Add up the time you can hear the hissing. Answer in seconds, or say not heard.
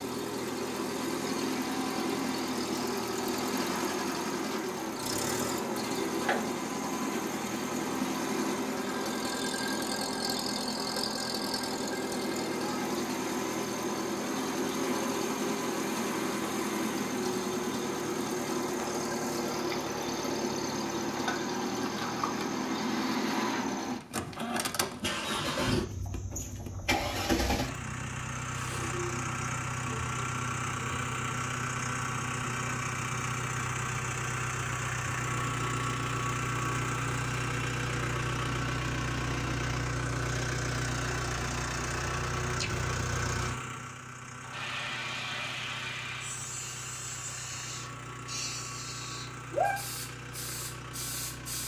7 s.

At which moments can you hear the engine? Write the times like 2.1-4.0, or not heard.
0.0-51.6.